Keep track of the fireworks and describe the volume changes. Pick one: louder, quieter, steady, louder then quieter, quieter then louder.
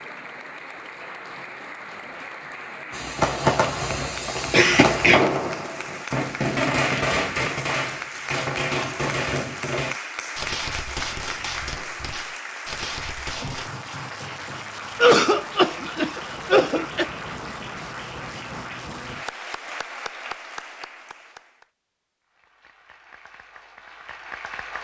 quieter.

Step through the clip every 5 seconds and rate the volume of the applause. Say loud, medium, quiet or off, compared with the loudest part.
loud, loud, loud, loud, medium.